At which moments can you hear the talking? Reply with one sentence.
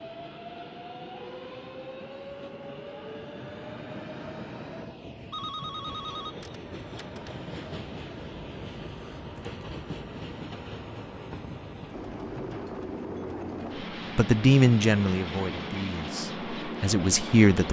The talking can be heard from 14.2 to 17.6 s.